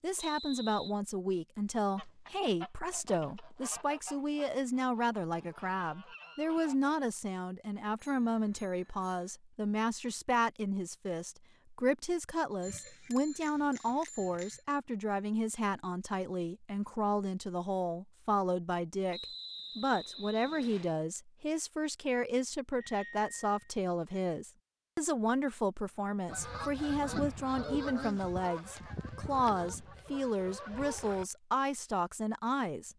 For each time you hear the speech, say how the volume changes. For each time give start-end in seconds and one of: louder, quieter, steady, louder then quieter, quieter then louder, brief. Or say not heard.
0.0-32.9 steady.